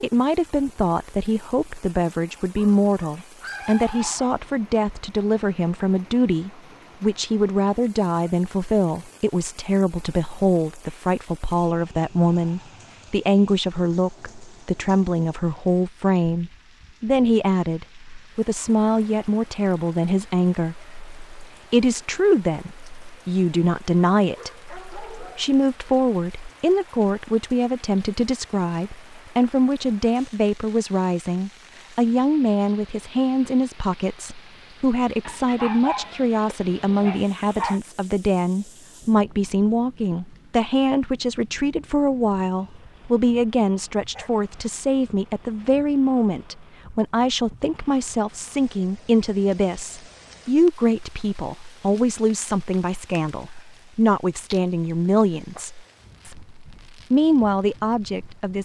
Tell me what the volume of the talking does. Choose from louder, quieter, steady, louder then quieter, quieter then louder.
steady.